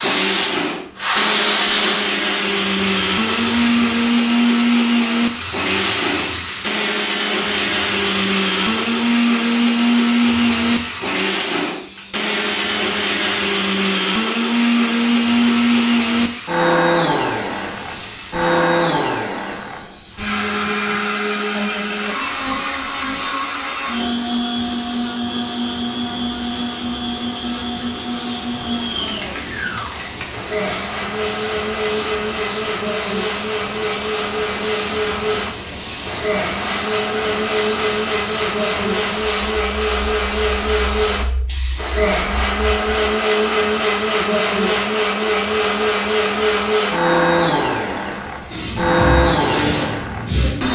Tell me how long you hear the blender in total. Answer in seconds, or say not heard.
51 s.